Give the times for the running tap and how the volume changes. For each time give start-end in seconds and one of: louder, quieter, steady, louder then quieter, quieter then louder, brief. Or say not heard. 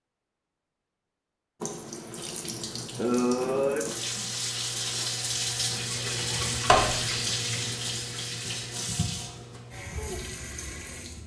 1.6-11.2 louder then quieter.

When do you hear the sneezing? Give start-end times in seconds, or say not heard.
2.1-4.2.